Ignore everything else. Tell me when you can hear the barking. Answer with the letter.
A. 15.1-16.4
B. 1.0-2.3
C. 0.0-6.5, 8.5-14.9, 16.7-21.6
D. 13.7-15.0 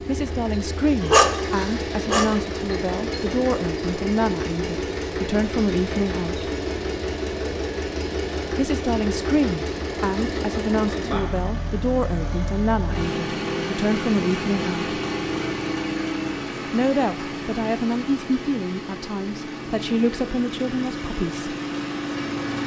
B.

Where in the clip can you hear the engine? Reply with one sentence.
You can hear the engine from 0.0 to 22.6 s.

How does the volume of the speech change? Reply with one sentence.
The volume of the speech stays about the same.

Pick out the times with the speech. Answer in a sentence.
You can hear the speech from 0.0 to 6.5 s, from 8.5 to 14.9 s and from 16.7 to 21.6 s.